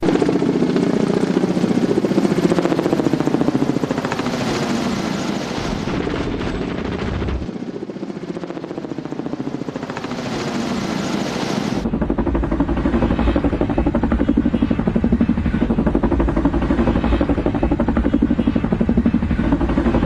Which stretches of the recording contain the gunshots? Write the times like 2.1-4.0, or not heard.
5.7-7.5.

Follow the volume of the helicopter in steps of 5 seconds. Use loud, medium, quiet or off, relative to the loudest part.
loud, medium, loud, loud.